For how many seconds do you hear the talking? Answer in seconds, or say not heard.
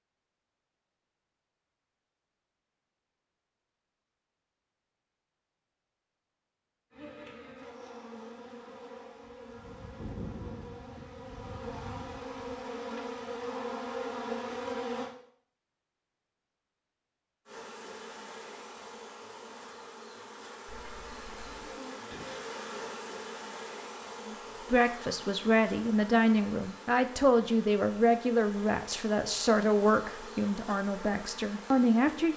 8 s.